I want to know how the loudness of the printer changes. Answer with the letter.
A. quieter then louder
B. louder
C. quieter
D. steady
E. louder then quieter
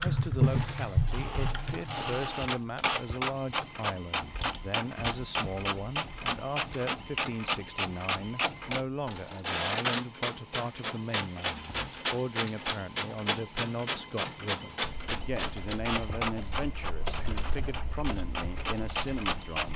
D.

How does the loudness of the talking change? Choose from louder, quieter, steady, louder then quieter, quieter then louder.
steady.